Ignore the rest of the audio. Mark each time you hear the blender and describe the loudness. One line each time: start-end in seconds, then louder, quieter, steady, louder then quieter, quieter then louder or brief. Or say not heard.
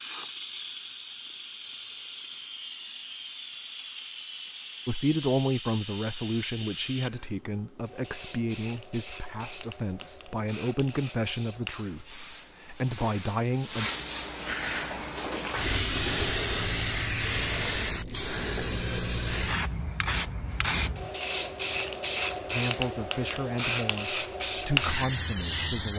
not heard.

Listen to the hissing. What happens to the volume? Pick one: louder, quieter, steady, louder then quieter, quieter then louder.
louder.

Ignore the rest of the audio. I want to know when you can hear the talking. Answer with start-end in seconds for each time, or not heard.
4.8-13.9, 22.5-25.9.